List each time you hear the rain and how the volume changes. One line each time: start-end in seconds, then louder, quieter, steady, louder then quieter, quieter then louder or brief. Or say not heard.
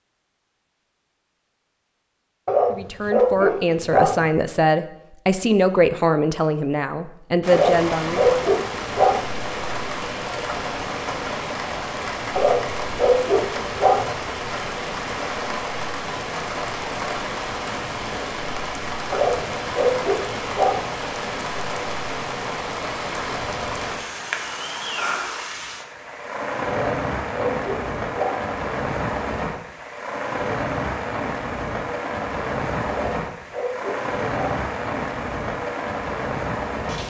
7.4-37.0 steady.